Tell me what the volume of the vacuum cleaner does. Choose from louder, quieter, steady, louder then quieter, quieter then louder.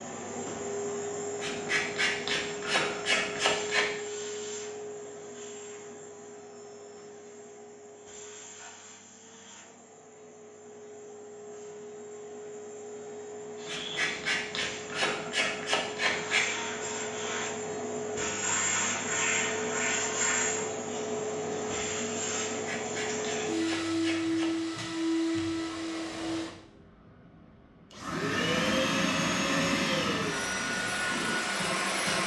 quieter then louder.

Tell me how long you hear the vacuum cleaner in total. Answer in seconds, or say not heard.
32 s.